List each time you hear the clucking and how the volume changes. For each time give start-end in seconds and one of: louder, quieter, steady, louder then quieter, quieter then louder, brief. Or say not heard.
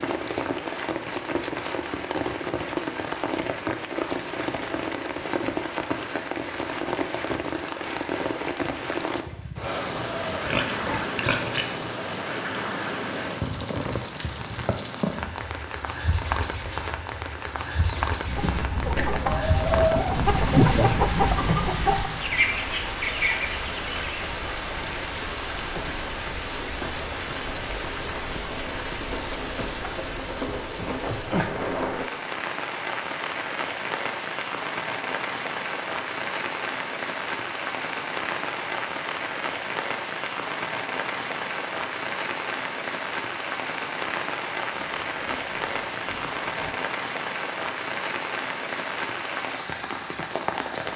17.8-24.3 louder then quieter.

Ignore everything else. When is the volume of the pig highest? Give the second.
11 s.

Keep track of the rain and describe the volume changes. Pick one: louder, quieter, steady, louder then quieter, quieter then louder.
steady.